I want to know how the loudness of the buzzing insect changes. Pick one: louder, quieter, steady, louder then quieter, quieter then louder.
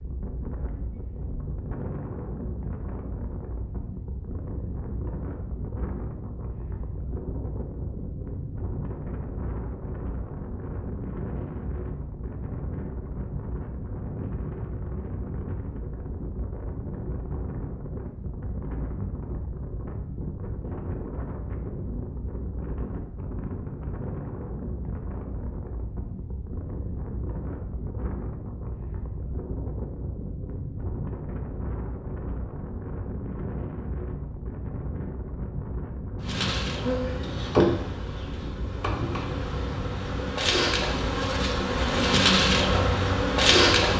quieter then louder.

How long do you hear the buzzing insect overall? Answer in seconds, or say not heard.
8 s.